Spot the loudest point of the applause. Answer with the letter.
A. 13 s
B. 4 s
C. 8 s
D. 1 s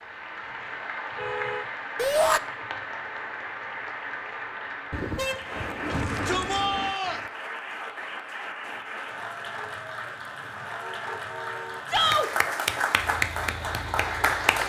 A.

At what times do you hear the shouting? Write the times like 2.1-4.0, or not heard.
1.9-2.4, 5.9-7.2, 11.8-12.3.